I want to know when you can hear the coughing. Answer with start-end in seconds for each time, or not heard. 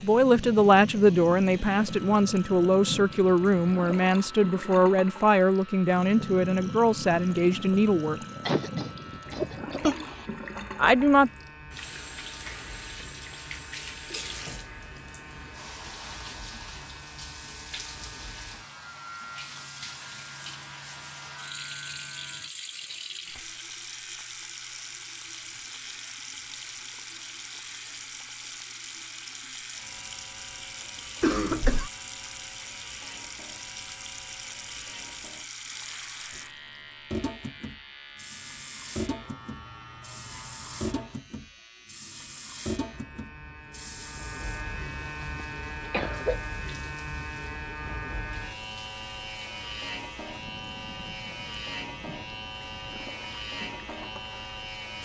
8.4-10.2, 31.2-31.9, 45.0-46.4.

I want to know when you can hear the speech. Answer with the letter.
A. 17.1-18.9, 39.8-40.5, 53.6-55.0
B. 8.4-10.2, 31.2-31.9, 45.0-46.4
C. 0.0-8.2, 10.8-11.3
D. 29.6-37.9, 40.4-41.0
C.